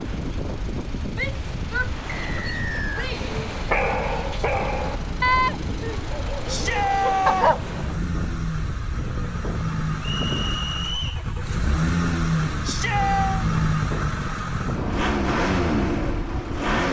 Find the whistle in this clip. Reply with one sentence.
You can hear the whistle from 2.0 to 3.1 s and from 10.0 to 11.2 s.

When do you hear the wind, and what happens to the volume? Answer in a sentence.
The wind can be heard from 0.0 to 16.8 s, at a steady volume.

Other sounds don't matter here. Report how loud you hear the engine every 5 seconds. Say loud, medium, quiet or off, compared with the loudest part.
quiet, medium, loud, loud.